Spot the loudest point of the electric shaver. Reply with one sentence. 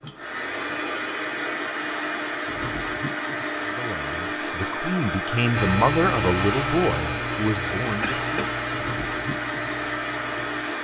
The loudest moment of the electric shaver is at 6 seconds.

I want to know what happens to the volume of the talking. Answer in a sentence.
The volume of the talking goes up, then down.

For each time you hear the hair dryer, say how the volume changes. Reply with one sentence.
The hair dryer can be heard from 0.0 to 10.7 s, at a steady volume.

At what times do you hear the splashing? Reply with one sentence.
You can't hear the splashing here.